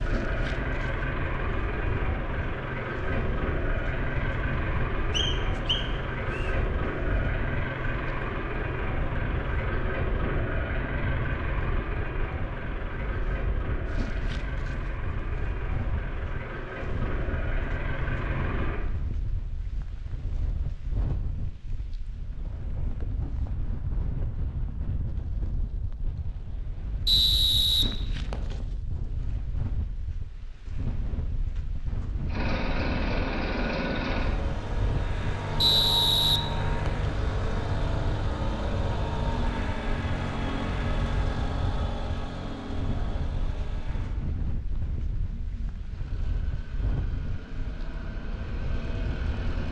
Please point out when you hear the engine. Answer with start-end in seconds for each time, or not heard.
0.0-18.9, 32.2-49.6.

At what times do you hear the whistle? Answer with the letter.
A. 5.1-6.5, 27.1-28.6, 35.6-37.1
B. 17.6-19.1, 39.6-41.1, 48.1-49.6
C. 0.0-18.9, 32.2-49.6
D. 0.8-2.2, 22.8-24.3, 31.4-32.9
A.